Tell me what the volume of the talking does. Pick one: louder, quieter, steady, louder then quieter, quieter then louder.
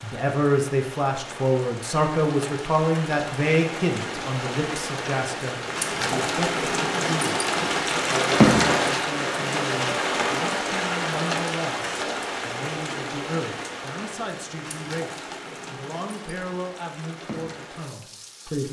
quieter.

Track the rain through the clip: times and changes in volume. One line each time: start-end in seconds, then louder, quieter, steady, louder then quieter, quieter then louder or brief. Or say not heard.
0.0-18.6 louder then quieter.